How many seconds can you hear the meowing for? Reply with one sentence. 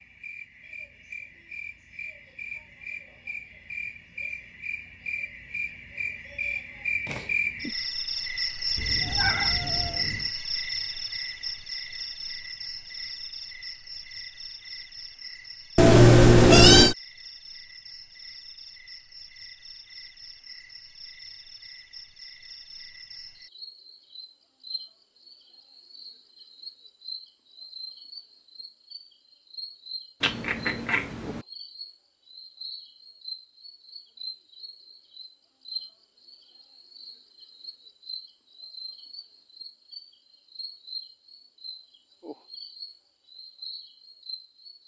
You can hear the meowing for 4 seconds altogether.